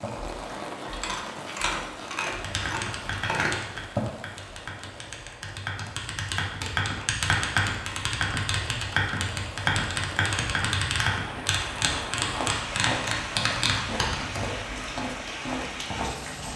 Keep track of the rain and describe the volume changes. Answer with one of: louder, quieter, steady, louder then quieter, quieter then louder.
quieter then louder.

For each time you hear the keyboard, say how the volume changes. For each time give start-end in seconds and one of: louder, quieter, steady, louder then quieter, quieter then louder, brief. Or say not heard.
2.3-14.4 louder.